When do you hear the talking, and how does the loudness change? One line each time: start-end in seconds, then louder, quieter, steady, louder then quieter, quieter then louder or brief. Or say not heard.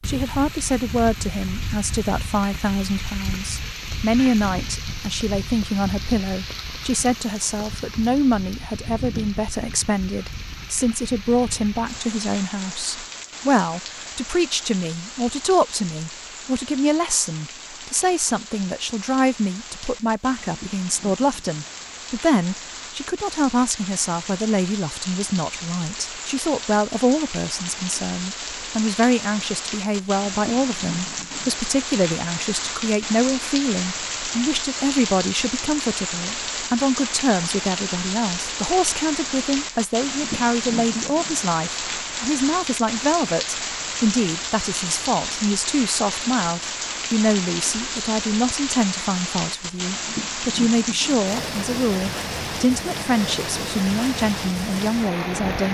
0.1-55.6 steady.